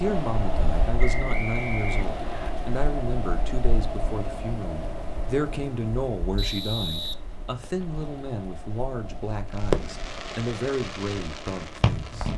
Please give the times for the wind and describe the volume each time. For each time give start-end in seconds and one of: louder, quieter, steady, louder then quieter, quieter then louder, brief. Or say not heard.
0.0-12.2 quieter.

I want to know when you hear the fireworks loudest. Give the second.
10 s.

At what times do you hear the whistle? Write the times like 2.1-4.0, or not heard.
0.9-2.5, 6.3-7.8.